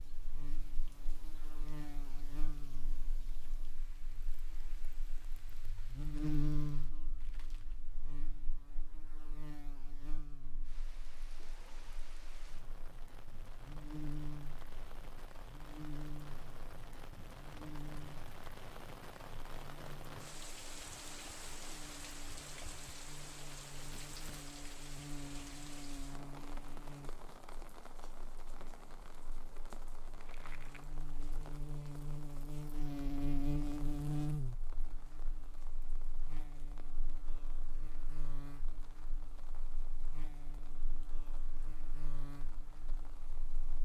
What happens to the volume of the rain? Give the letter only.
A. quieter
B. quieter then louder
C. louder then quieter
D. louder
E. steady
C.